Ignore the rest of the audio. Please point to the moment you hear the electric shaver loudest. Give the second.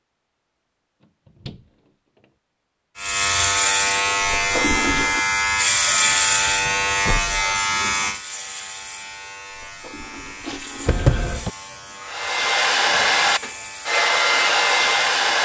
6 s.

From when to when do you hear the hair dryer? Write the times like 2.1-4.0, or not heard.
12.1-15.3.